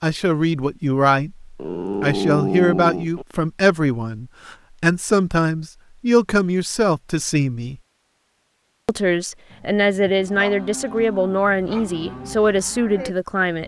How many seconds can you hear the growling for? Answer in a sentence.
The growling can be heard for 4 seconds in total.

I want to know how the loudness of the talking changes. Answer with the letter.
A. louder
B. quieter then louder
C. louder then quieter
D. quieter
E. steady
E.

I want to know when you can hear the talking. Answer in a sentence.
You can hear the talking from 0.0 to 7.8 s and from 8.8 to 13.6 s.